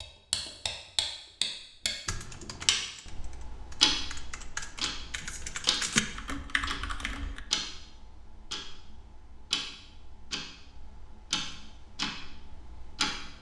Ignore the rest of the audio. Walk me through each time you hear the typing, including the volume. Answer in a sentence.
The typing can be heard from 2.0 to 7.4 s, getting louder then quieter.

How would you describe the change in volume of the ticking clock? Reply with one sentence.
The loudness of the ticking clock goes down.